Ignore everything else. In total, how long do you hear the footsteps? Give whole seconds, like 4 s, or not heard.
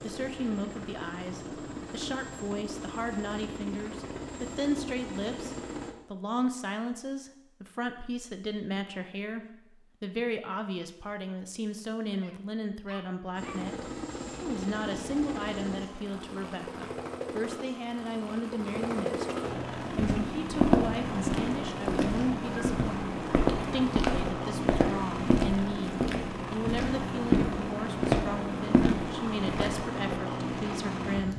10 s.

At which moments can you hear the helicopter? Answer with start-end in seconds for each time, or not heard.
0.0-6.0, 13.3-31.3.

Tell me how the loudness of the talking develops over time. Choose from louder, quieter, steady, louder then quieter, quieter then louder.
steady.